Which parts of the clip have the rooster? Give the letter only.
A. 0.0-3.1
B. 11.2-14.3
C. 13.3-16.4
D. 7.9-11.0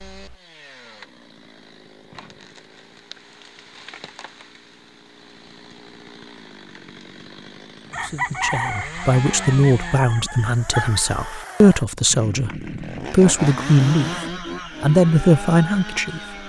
D.